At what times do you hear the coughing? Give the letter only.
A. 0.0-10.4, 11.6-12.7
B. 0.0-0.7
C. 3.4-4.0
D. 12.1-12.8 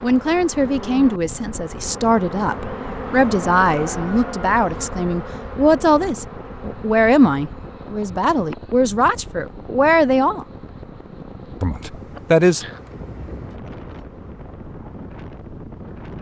D.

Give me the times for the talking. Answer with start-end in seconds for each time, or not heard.
0.0-10.4, 11.6-12.7.